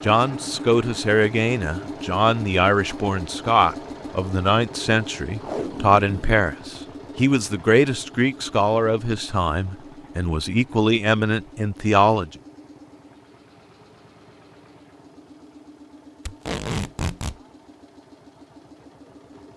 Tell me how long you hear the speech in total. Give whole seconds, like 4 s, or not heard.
12 s.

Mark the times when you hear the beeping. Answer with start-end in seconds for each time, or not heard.
not heard.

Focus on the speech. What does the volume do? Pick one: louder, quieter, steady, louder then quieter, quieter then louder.
steady.